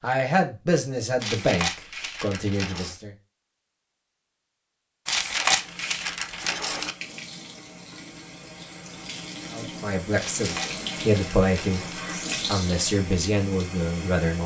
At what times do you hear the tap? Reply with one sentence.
The tap can be heard from 5.5 to 14.4 s.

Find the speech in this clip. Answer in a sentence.
The speech can be heard from 0.0 to 3.1 s and from 9.5 to 14.4 s.